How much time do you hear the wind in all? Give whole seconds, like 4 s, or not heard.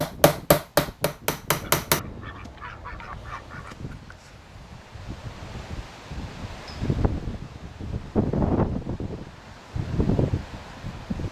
11 s.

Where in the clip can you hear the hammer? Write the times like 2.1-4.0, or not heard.
0.0-2.0.